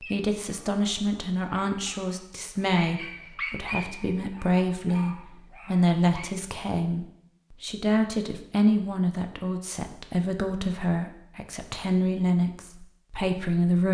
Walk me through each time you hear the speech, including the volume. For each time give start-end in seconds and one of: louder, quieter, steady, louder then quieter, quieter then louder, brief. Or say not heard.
0.0-13.8 steady.